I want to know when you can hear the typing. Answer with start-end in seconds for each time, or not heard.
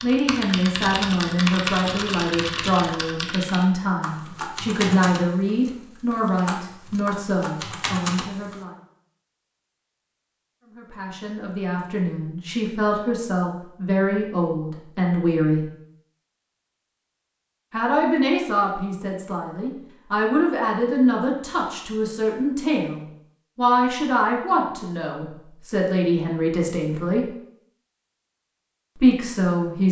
0.0-8.6.